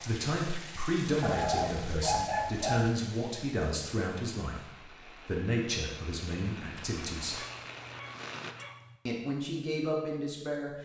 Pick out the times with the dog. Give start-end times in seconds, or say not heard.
1.2-3.0, 7.2-8.9.